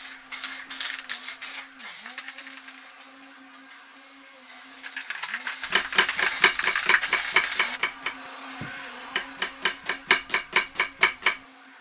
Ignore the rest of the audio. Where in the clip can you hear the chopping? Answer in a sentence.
You can hear the chopping from 5.7 to 11.4 s.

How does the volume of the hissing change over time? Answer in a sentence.
The volume of the hissing goes down, then up.